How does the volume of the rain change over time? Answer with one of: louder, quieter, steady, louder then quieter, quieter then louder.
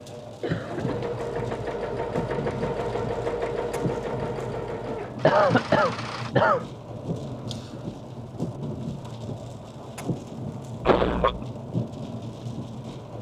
steady.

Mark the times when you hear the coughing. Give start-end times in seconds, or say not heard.
0.4-1.1, 5.2-6.7, 10.8-11.4.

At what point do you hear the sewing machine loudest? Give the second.
3 s.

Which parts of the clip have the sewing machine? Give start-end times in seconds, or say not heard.
0.0-6.3.